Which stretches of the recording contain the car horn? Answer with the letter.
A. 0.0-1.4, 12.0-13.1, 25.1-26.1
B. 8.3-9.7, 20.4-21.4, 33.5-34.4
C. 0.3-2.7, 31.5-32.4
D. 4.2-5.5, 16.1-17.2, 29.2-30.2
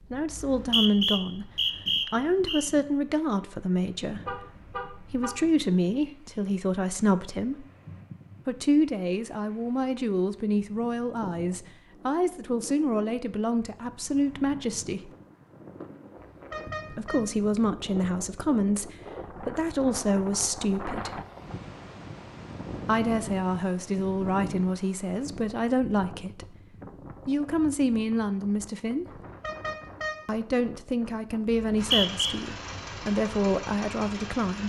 D.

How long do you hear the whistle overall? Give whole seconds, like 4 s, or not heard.
3 s.